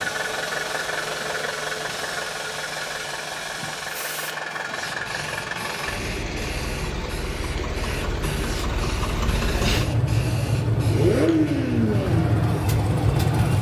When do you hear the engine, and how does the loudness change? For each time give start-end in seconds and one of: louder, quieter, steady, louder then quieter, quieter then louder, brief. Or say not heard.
0.0-13.5 louder.